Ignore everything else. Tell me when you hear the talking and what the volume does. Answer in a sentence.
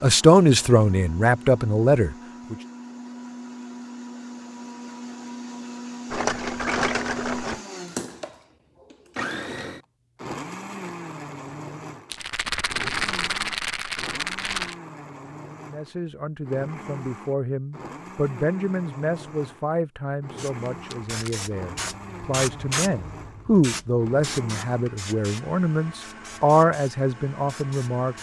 You can hear the talking briefly from 0.0 to 2.5 s; and from 15.7 to 28.1 s, getting louder.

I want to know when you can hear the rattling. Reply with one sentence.
You can hear the rattling from 6.1 to 7.6 s, from 12.1 to 14.8 s and from 20.4 to 21.4 s.